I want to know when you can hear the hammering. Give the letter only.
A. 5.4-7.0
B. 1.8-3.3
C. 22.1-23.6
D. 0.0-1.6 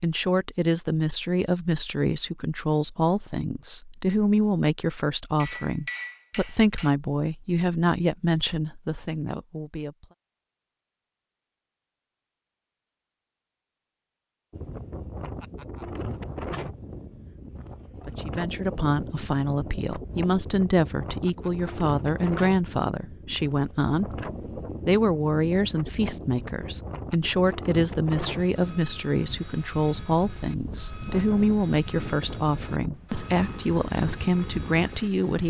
A.